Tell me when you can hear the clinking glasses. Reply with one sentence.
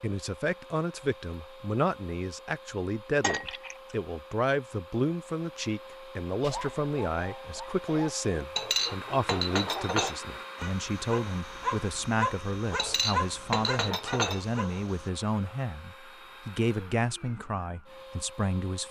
The clinking glasses can be heard from 3.2 to 3.8 s, from 8.6 to 10.2 s and from 12.8 to 14.4 s.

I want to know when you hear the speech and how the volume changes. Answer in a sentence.
The speech can be heard from 0.0 to 18.8 s, at a steady volume.